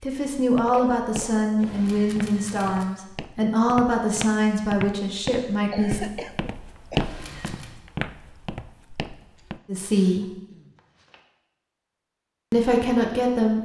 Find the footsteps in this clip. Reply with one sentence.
You can hear the footsteps from 0.3 to 9.6 s.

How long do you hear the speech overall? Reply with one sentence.
You can hear the speech for 8 seconds altogether.